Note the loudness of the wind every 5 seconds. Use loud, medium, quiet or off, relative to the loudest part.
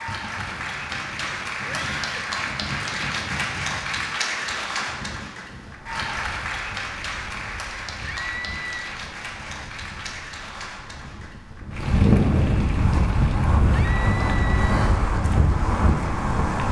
quiet, quiet, loud, loud.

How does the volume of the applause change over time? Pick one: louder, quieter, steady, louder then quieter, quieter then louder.
quieter.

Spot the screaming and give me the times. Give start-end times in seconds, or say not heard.
1.6-2.3, 8.0-8.8, 13.7-14.7.